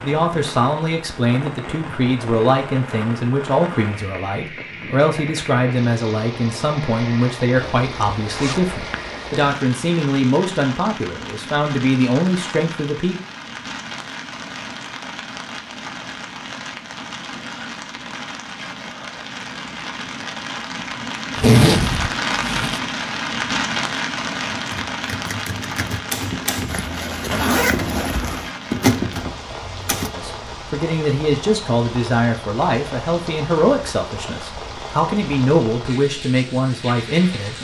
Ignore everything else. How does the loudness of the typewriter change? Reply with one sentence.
The loudness of the typewriter goes up.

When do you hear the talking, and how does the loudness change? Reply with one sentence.
You can hear the talking from 0.0 to 13.2 s, at a steady volume; and from 30.1 to 37.6 s, at a steady volume.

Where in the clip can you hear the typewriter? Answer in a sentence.
The typewriter can be heard from 24.5 to 30.1 s.